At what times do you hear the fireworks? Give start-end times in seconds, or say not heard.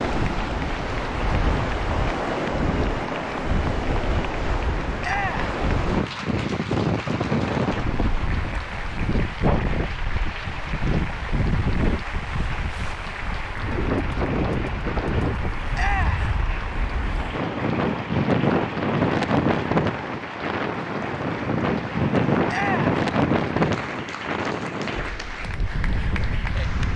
not heard.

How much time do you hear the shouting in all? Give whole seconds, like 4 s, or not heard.
2 s.